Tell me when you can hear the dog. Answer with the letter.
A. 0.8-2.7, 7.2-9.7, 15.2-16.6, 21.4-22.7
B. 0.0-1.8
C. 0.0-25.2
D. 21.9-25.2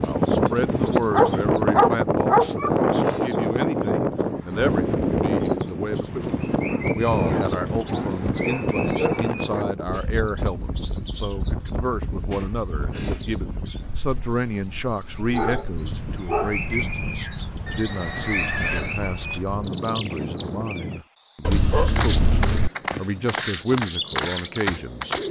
A.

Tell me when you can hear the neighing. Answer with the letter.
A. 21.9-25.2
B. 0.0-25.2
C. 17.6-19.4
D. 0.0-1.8
C.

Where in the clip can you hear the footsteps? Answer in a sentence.
The footsteps can be heard from 21.9 to 25.2 s.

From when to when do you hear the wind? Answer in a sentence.
You can hear the wind from 0.0 to 21.1 s.